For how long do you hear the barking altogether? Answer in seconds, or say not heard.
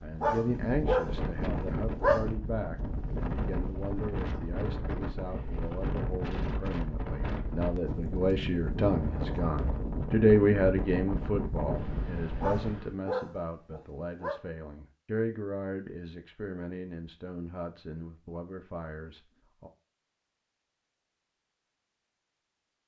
4 s.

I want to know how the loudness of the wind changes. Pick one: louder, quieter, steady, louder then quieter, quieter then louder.
steady.